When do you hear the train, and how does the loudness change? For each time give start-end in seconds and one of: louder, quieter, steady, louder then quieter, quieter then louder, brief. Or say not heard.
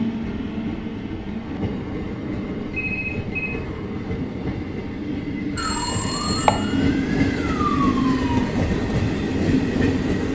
0.0-10.3 louder.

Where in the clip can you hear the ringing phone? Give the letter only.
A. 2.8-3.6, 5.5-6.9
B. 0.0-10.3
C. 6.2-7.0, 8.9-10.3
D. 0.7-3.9
A.